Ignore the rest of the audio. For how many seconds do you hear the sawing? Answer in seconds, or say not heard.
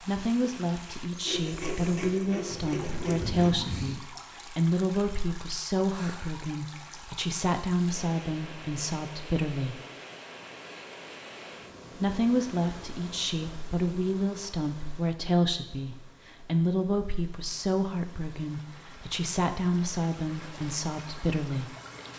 2 s.